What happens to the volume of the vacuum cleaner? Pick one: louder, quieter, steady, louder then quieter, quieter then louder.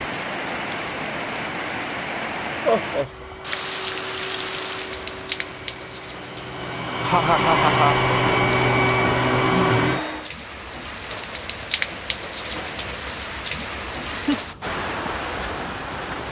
louder.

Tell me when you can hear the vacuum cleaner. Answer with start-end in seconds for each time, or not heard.
2.9-10.3.